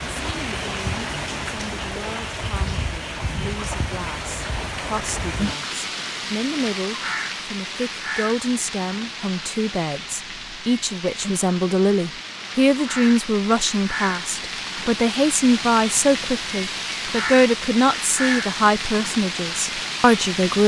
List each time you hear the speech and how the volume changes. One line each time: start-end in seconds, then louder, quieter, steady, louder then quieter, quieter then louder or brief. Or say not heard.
0.2-20.6 louder.